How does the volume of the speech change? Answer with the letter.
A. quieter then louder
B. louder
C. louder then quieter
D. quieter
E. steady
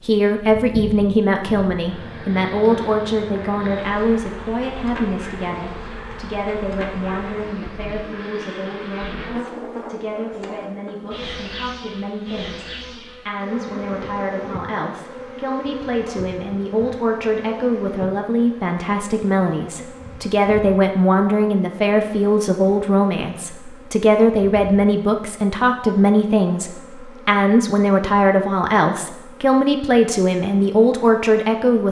A.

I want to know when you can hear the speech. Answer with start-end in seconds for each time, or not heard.
0.0-31.8.